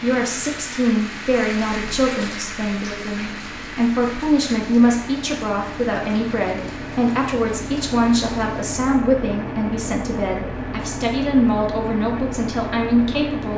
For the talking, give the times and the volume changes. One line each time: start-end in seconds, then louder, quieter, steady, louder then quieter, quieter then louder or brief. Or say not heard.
0.0-13.5 steady.